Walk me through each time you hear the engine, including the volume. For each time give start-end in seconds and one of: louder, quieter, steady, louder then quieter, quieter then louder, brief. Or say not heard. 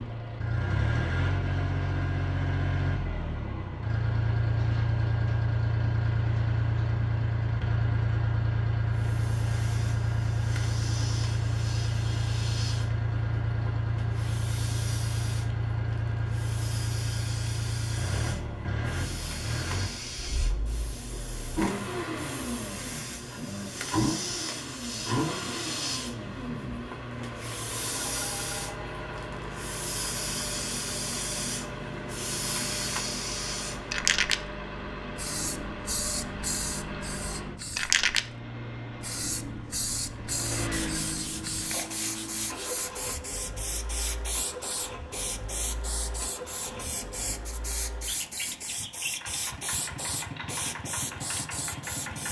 0.0-52.2 quieter.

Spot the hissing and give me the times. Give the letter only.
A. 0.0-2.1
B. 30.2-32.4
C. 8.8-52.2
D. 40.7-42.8
C.